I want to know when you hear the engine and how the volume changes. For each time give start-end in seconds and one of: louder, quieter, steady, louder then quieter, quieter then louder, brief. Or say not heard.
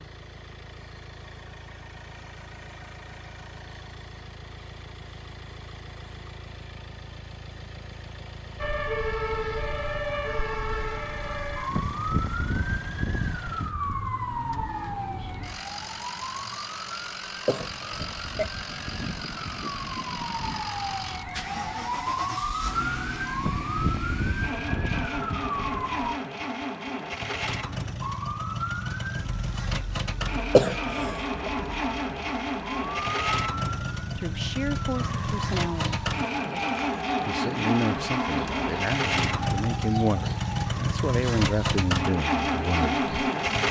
0.0-43.6 louder.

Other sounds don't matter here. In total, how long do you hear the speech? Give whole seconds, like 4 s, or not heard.
8 s.